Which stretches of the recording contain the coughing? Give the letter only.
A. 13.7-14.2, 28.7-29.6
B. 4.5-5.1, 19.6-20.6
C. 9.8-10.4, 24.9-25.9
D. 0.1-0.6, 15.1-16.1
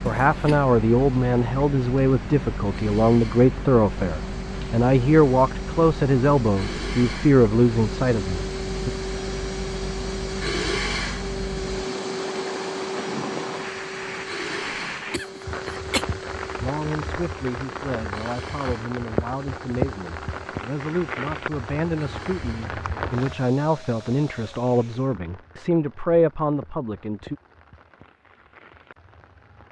D.